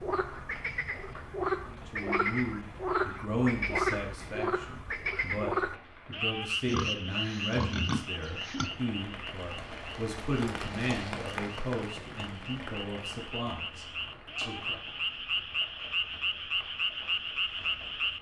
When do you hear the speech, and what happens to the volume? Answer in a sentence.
You can hear the speech from 1.6 to 14.8 s, getting quieter.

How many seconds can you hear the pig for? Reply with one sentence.
You can hear the pig for 2 seconds altogether.